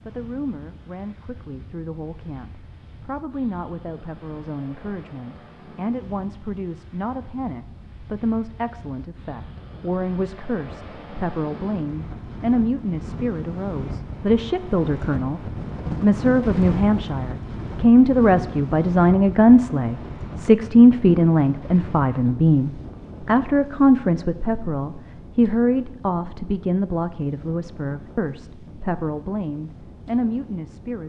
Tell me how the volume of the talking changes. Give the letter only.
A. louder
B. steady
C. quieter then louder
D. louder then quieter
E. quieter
D.